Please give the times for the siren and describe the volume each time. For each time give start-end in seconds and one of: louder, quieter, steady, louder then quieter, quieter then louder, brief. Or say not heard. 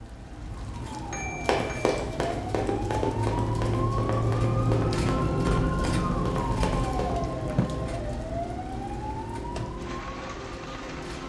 0.0-11.2 louder then quieter.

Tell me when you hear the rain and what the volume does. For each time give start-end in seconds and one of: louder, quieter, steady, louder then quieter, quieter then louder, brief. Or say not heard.
0.0-11.2 louder then quieter.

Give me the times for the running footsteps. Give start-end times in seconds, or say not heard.
1.4-7.2.